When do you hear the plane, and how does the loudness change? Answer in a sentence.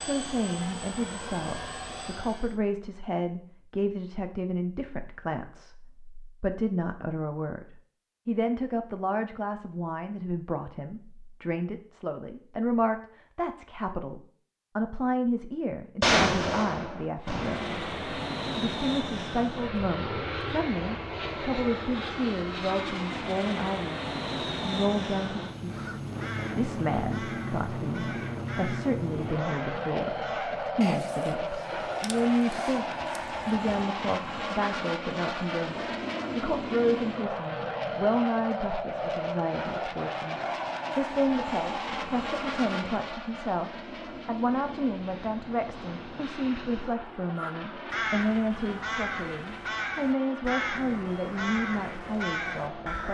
The plane can be heard briefly from 0.0 to 2.6 s; and from 17.2 to 53.0 s, getting quieter.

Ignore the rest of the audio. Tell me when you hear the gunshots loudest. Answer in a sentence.
The volume of the gunshots peaks at 16 seconds.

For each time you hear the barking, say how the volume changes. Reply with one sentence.
The barking can't be heard in this clip.